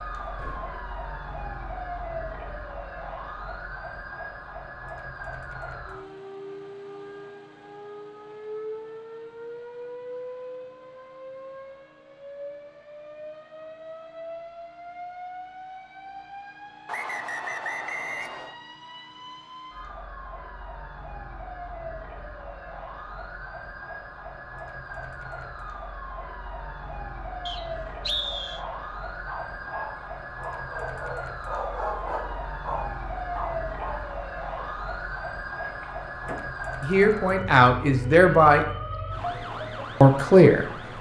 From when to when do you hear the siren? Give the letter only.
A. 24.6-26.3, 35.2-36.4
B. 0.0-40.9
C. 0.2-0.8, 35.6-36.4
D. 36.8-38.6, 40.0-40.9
B.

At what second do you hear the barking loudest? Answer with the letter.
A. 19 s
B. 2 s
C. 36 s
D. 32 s
D.